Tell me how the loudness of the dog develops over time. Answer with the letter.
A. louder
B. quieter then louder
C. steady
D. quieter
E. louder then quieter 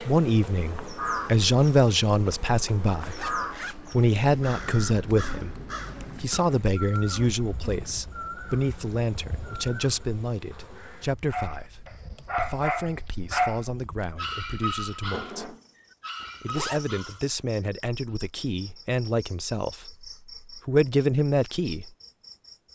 D.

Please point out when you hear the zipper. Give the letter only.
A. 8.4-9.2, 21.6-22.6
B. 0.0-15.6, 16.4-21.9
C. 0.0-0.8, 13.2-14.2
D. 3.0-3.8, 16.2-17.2
D.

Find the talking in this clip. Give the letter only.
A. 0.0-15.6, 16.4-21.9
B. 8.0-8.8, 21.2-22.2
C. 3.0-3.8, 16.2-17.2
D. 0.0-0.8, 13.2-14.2
A.